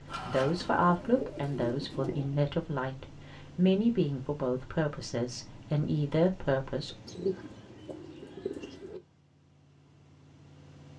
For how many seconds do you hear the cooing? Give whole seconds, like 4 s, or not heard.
4 s.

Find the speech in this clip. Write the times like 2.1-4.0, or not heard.
0.2-7.0.